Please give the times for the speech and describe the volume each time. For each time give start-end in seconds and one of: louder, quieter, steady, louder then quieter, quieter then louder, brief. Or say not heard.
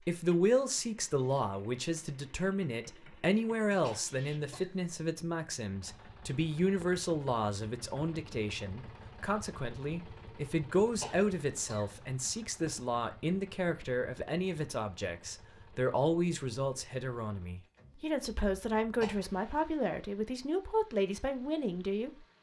0.1-22.1 steady.